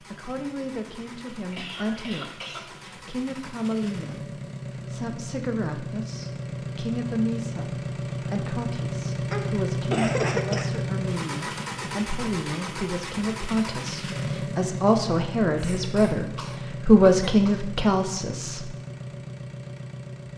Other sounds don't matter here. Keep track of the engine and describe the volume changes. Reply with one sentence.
The loudness of the engine goes up, then down.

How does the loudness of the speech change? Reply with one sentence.
The loudness of the speech goes up.